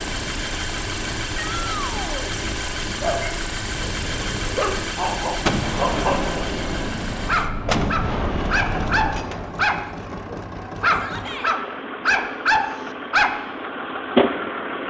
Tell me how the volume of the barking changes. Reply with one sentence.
The volume of the barking goes up.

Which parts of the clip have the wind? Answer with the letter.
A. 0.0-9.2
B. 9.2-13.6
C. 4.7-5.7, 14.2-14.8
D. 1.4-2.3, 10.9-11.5
A.